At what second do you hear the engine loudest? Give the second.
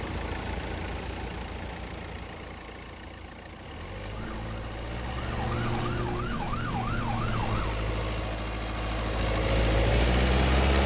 10 s.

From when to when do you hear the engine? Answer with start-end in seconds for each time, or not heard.
0.0-10.8.